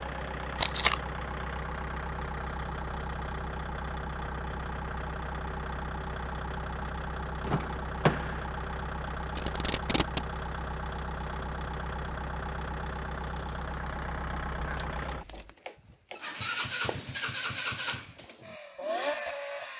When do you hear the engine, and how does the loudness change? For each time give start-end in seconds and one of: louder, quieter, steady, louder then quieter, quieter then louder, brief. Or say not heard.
0.0-19.7 steady.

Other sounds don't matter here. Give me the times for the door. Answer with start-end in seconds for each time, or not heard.
7.4-8.4.